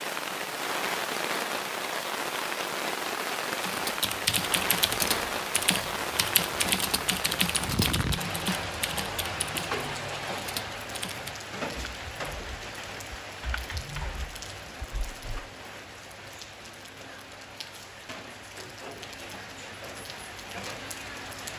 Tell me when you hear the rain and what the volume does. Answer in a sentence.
The rain can be heard from 0.0 to 21.5 s, getting quieter.